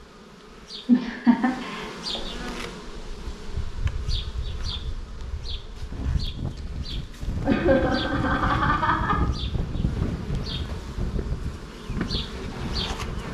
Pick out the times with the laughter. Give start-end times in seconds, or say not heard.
0.8-2.2, 7.5-9.2.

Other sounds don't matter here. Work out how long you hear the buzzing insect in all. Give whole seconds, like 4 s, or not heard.
13 s.